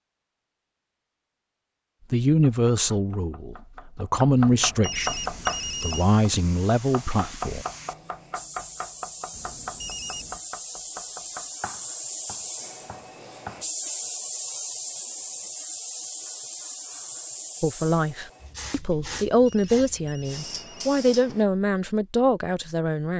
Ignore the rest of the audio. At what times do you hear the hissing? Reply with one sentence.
The hissing can be heard from 5.0 to 21.4 s.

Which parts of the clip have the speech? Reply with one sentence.
The speech can be heard from 2.1 to 7.7 s and from 17.6 to 23.1 s.